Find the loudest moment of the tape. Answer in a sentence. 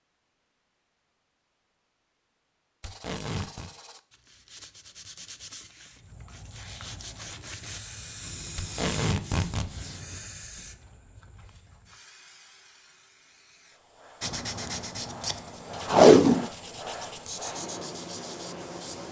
The volume of the tape peaks at 16 seconds.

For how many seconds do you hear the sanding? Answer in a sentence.
You can hear the sanding for 13 seconds altogether.